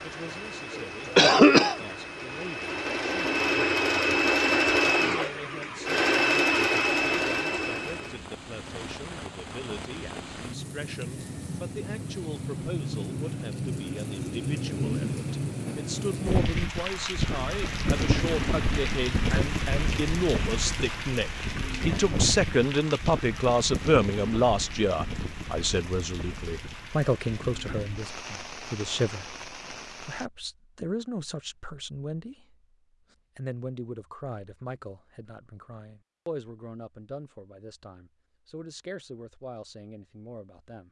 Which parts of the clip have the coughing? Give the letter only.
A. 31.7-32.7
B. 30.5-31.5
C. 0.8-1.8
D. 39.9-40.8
C.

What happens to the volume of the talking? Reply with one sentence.
The loudness of the talking goes up, then down.